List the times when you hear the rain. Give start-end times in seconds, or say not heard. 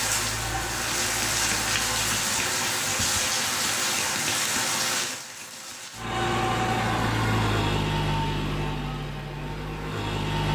0.0-6.1.